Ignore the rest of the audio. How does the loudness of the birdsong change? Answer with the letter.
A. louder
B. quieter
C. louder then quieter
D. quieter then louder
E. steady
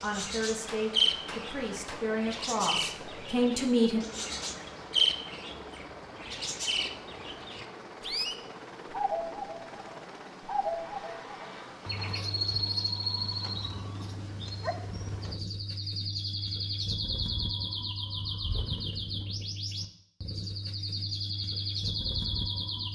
E.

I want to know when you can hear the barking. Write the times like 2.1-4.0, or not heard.
14.4-15.3.